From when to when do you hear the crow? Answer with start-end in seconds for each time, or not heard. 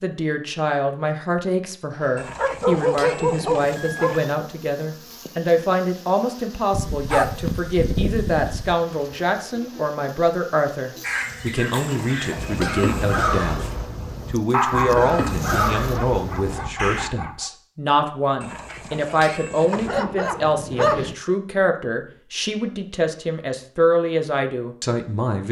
11.0-17.1.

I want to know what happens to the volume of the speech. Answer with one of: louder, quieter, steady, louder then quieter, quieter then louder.
steady.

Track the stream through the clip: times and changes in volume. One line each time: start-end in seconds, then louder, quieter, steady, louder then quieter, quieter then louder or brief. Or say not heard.
not heard.